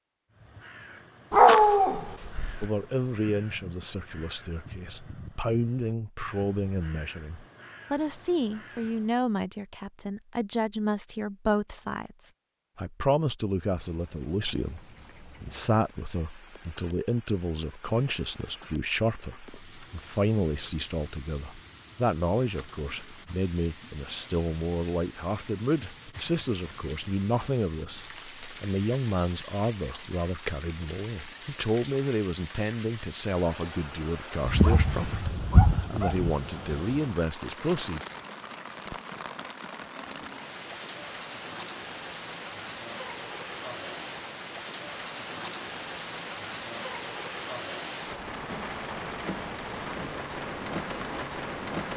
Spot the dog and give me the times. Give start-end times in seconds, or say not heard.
1.3-2.6, 34.5-36.3.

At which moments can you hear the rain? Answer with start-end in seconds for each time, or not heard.
13.6-51.9.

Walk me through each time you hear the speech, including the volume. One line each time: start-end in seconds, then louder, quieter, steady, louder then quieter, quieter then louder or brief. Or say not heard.
2.6-38.0 steady.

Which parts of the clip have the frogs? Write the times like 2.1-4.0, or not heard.
not heard.